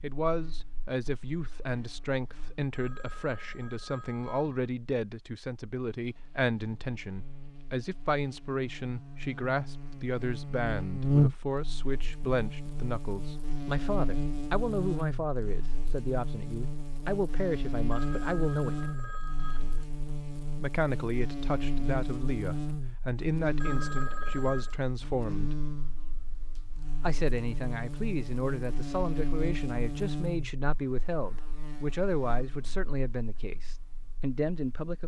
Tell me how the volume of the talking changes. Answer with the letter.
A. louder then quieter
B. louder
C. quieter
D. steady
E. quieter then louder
D.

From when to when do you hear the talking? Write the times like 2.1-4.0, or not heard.
0.0-18.9, 20.6-25.6, 27.0-35.0.